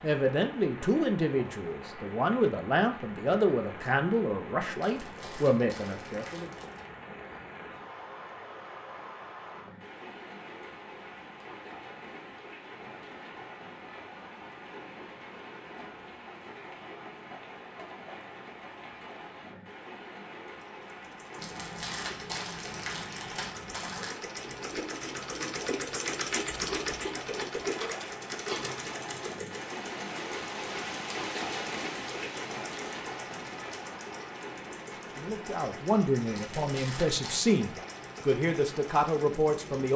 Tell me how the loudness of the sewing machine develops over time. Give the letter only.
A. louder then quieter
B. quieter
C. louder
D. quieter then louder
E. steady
A.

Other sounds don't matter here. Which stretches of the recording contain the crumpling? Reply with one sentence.
You can hear the crumpling from 4.8 to 6.8 s, from 21.4 to 24.1 s and from 36.3 to 37.5 s.